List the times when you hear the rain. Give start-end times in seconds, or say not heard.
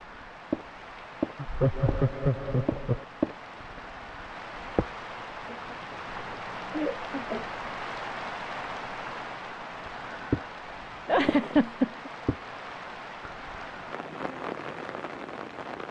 0.0-15.8.